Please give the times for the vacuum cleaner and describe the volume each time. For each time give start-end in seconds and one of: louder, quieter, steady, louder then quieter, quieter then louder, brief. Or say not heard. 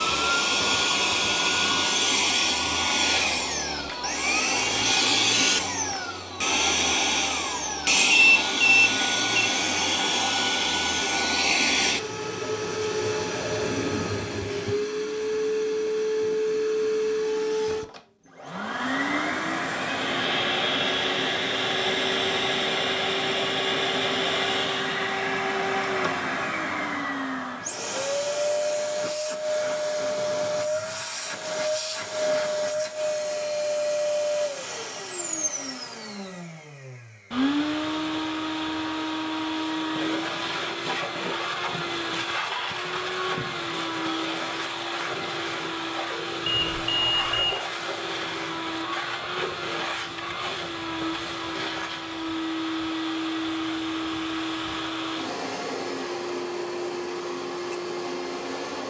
0.0-58.8 quieter.